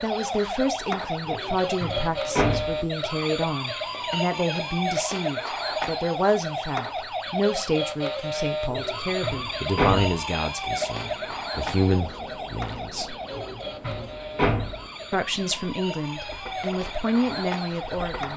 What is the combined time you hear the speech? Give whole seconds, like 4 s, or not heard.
16 s.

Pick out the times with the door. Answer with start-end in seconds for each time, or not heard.
1.2-2.8, 8.7-10.1, 13.3-14.8.